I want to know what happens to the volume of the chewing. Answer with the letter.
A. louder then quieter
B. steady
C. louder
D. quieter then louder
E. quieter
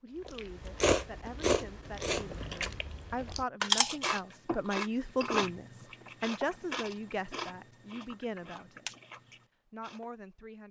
E.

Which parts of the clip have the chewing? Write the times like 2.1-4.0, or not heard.
0.2-10.1.